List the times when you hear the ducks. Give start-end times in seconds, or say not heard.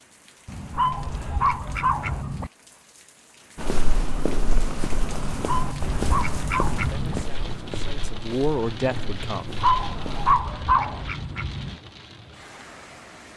0.5-2.5, 5.2-7.2, 9.8-11.8.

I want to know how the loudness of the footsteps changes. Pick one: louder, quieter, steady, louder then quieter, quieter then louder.
quieter.